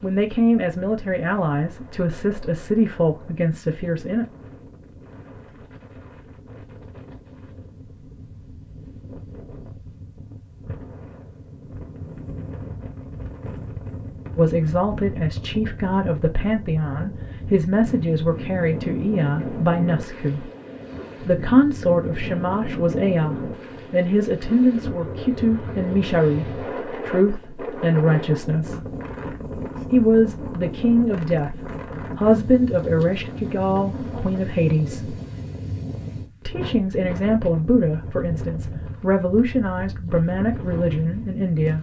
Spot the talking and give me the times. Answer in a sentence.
You can hear the talking from 0.0 to 4.2 s, from 14.3 to 20.5 s, from 21.2 to 28.8 s, from 29.9 to 31.6 s, from 32.1 to 35.1 s and from 36.5 to 41.7 s.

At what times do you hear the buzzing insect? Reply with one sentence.
You can't hear the buzzing insect here.